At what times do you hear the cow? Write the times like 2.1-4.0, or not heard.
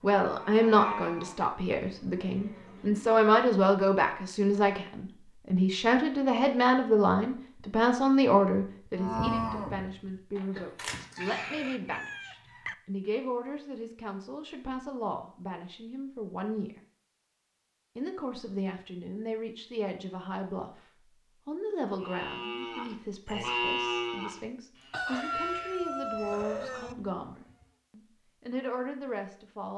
0.1-3.2, 8.9-11.7, 21.9-27.7.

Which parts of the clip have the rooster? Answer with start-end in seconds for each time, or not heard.
11.2-12.8, 24.9-26.9.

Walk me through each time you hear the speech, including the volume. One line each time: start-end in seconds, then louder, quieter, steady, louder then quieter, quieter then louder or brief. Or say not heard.
0.0-16.8 quieter
17.9-20.8 brief
21.4-29.7 quieter then louder.